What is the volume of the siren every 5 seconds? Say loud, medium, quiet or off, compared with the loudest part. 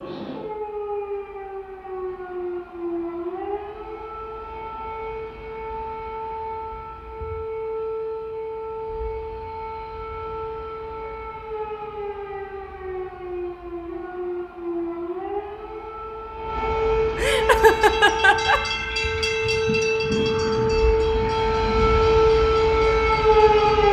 quiet, quiet, quiet, medium, loud.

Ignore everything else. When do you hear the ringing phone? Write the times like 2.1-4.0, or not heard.
not heard.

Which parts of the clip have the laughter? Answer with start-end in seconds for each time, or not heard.
17.1-18.6.